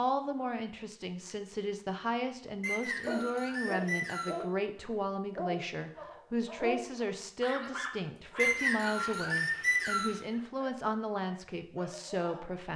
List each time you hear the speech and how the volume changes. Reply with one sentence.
The speech can be heard from 0.0 to 12.7 s, at a steady volume.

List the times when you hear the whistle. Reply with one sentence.
You can hear the whistle from 2.6 to 4.5 s and from 8.3 to 10.2 s.